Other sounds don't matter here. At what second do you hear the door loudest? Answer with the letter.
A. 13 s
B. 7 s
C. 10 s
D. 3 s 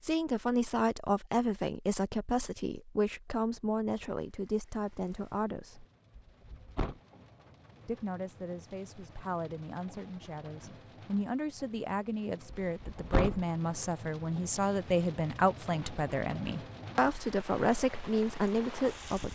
A.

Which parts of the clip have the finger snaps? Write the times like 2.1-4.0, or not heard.
not heard.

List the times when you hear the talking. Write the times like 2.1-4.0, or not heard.
0.0-5.8, 7.8-19.3.